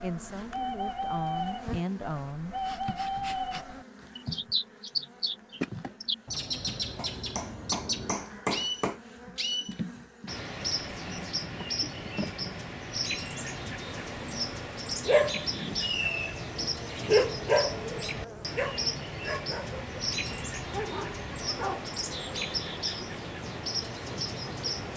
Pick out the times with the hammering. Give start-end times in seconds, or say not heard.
7.0-9.0.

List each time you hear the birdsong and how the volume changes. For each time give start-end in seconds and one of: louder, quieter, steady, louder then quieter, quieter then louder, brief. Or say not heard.
0.0-24.9 steady.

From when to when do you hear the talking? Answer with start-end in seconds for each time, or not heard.
0.0-2.5.